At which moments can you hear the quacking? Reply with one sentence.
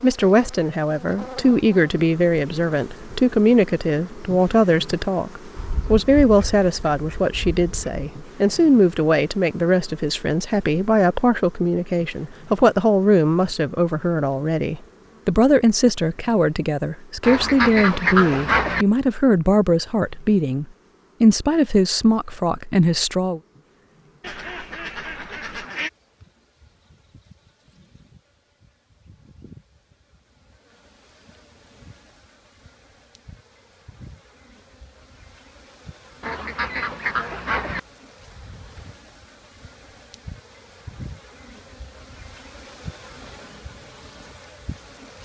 The quacking can be heard from 5.5 to 8.0 s, from 17.2 to 18.9 s, from 24.2 to 25.9 s and from 36.2 to 37.8 s.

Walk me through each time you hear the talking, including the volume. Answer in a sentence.
The talking can be heard from 0.0 to 23.4 s, at a steady volume.